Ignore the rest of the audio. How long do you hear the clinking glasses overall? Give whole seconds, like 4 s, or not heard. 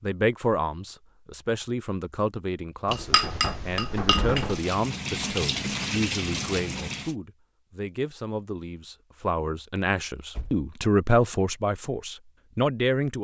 2 s.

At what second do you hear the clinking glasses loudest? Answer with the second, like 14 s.
3 s.